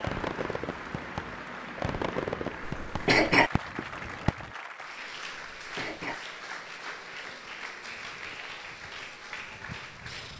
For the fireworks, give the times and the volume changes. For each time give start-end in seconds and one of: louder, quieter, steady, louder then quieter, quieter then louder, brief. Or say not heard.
0.0-4.5 louder then quieter.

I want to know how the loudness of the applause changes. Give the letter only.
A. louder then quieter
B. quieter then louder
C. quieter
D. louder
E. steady
E.